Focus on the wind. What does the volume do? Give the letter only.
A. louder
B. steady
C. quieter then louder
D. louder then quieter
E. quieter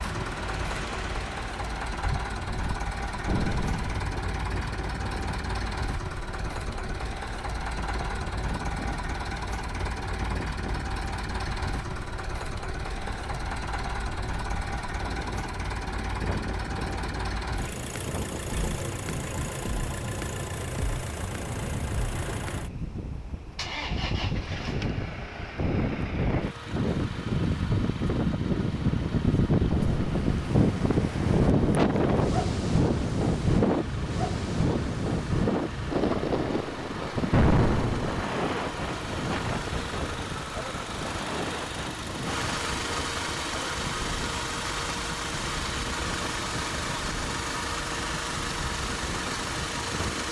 D.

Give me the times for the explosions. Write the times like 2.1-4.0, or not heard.
3.2-4.0, 29.7-30.4, 37.3-38.2.